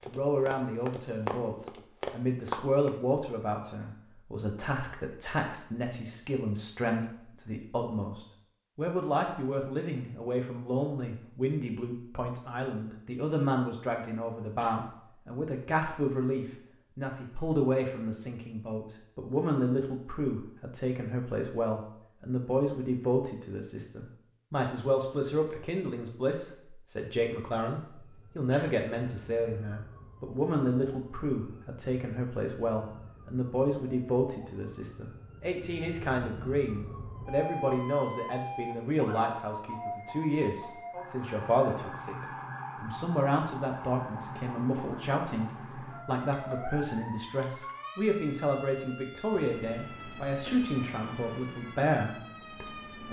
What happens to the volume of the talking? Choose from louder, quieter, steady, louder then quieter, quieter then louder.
steady.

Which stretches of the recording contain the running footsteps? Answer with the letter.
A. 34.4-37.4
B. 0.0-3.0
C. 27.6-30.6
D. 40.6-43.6
B.